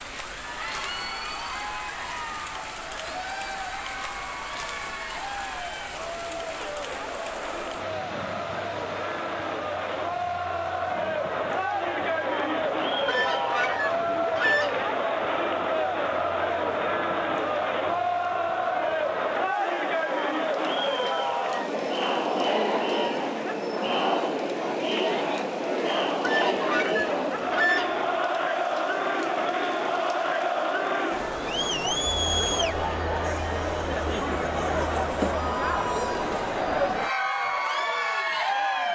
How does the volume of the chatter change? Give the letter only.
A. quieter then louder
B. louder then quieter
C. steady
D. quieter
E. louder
E.